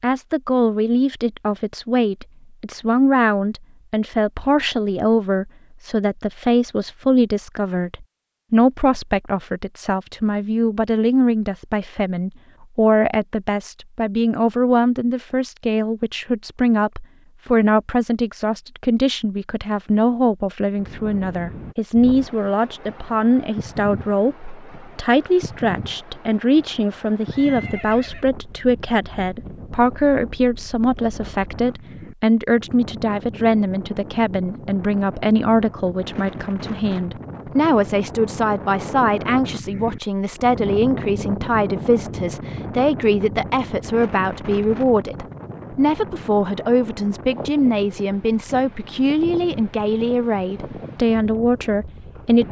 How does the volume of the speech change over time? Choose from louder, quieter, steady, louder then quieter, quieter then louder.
steady.